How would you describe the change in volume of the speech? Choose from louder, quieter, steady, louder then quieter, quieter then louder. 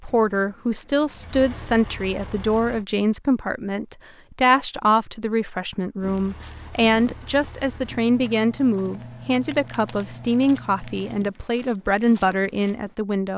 steady.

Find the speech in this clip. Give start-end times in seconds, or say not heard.
0.0-13.3.